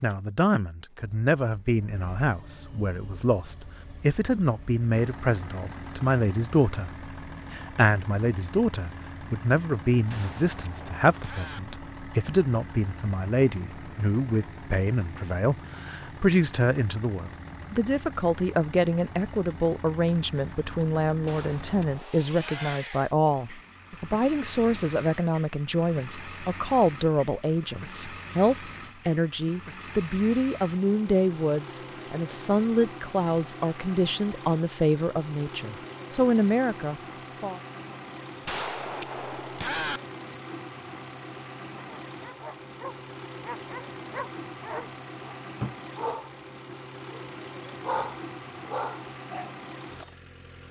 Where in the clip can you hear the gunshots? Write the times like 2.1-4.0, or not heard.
10.1-11.6, 21.2-22.8, 38.5-40.0.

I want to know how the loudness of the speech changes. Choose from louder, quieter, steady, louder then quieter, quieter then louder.
steady.